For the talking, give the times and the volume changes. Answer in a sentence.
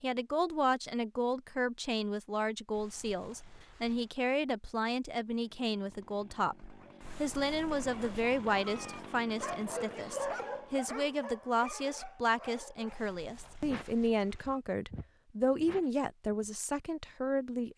You can hear the talking from 0.0 to 17.7 s, at a steady volume.